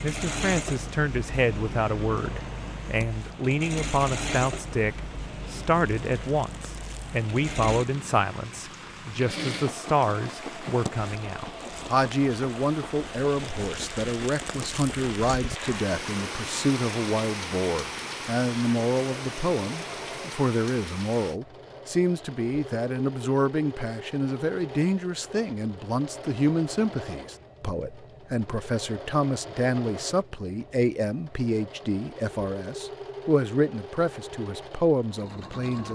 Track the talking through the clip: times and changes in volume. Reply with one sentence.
You can hear the talking from 0.0 to 35.9 s, at a steady volume.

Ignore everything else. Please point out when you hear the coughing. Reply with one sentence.
The coughing can't be heard in this clip.